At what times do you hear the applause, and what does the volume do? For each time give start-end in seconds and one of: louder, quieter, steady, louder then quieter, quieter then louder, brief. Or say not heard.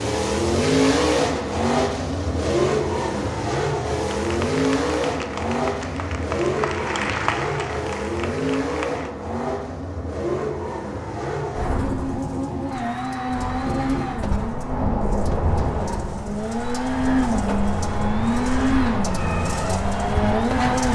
4.0-9.1 louder then quieter.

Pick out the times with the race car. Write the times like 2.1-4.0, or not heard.
0.0-20.9.